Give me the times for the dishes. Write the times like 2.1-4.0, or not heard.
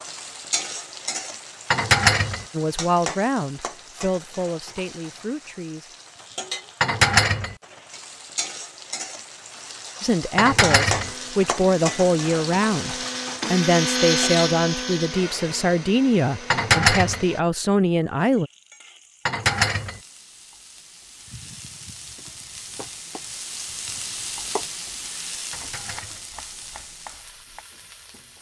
1.7-2.5, 6.8-7.5, 10.3-11.1, 16.5-17.2, 19.2-20.0, 25.5-26.2.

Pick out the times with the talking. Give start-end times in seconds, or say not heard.
2.5-6.0, 10.0-18.5.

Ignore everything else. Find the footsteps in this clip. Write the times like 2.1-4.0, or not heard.
not heard.